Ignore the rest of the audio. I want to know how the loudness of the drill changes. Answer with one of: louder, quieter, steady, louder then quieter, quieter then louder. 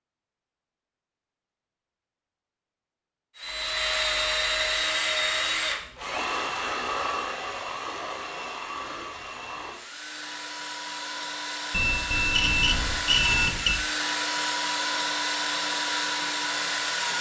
quieter then louder.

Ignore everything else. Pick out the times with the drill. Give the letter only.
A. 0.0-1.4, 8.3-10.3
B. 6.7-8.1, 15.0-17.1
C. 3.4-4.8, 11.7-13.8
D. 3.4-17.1
D.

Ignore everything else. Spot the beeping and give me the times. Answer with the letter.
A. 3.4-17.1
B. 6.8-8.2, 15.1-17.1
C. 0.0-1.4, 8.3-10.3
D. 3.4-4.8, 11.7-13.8
D.